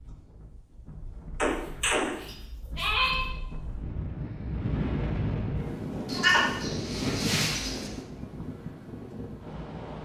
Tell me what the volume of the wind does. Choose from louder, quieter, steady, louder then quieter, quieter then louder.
louder then quieter.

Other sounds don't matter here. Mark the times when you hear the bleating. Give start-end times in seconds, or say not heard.
1.4-3.3, 6.0-8.0.